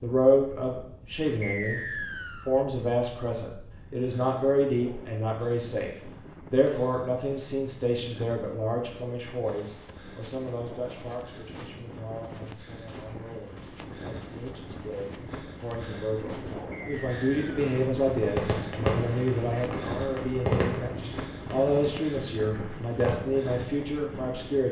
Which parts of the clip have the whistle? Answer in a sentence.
You can hear the whistle from 1.4 to 2.5 s and from 16.7 to 17.7 s.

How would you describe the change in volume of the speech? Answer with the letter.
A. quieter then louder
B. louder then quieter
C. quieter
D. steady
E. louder
A.